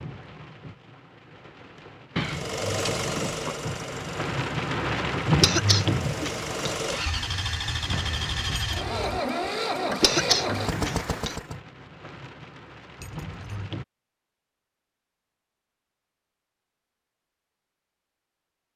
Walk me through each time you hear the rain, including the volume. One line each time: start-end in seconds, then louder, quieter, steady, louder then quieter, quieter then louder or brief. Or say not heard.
0.0-13.8 louder then quieter.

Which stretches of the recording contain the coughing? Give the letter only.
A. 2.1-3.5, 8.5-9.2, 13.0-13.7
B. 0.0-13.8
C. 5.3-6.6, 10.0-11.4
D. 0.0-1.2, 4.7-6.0
C.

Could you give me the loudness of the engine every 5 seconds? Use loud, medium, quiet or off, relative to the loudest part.
loud, loud, loud, off.